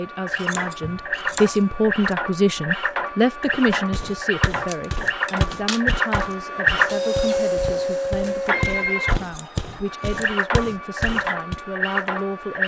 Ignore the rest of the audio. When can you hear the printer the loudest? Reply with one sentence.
The loudest moment of the printer is at 7 seconds.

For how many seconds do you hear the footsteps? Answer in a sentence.
You can hear the footsteps for 8 seconds altogether.